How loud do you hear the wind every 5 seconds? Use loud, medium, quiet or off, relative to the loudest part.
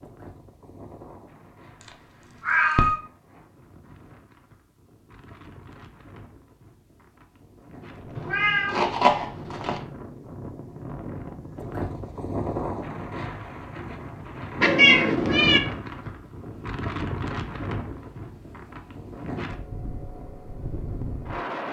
quiet, medium, loud, loud, loud.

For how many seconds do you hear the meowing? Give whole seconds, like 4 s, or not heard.
4 s.